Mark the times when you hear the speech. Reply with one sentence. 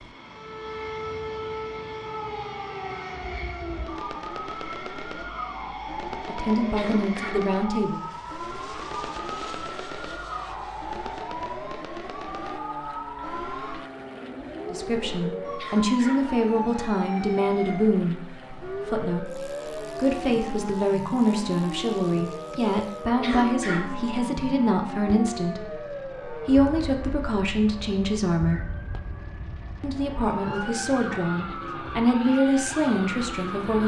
The speech can be heard from 6.2 to 8.0 s, from 14.7 to 28.6 s and from 29.8 to 33.8 s.